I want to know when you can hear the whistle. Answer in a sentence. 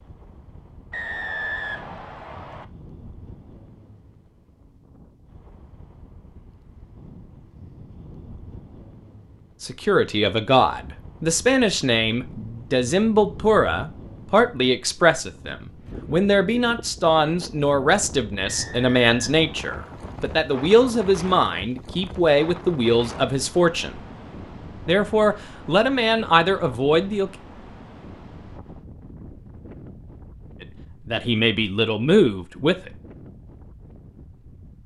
You can hear the whistle from 0.9 to 2.6 s and from 18.4 to 20.2 s.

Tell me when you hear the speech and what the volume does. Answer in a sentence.
You can hear the speech from 9.6 to 24.0 s, at a steady volume; briefly from 24.9 to 27.3 s; and briefly from 30.6 to 32.9 s.